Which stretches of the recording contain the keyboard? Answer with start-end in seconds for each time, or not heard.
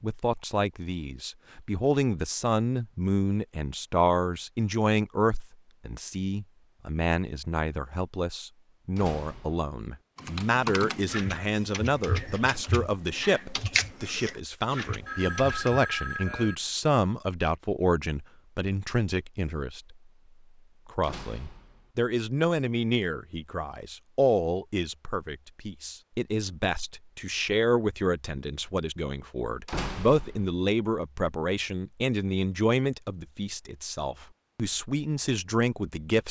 10.2-15.8.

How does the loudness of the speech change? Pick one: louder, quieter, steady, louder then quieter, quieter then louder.
steady.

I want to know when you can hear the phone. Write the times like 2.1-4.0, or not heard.
15.1-16.6.